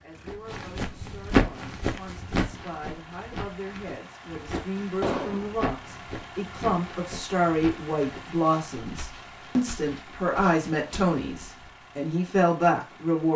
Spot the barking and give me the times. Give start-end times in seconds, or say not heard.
not heard.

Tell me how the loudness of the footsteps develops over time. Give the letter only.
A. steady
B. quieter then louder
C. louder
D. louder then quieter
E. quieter
E.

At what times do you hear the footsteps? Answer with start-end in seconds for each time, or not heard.
0.2-11.7.